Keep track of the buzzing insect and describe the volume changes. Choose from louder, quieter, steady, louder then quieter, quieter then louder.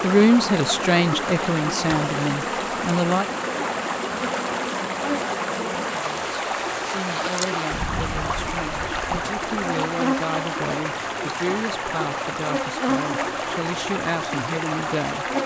steady.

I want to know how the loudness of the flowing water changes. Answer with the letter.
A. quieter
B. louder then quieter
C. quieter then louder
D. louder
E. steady
E.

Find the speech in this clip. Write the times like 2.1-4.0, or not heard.
0.0-3.2, 5.9-15.2.